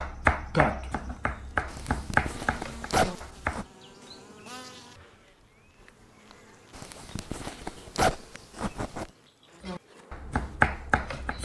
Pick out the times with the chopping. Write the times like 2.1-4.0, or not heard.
0.0-3.6, 9.6-11.4.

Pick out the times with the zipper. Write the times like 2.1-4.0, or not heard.
1.6-3.6, 6.8-9.1.